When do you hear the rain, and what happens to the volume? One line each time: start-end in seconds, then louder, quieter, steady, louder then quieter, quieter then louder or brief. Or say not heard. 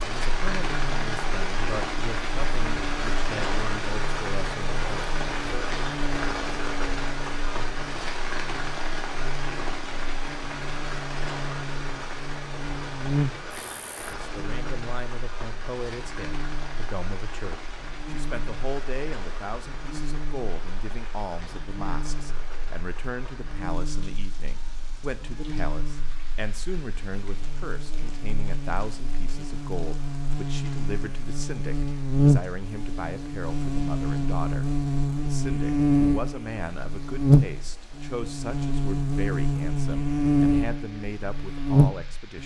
0.0-42.4 quieter.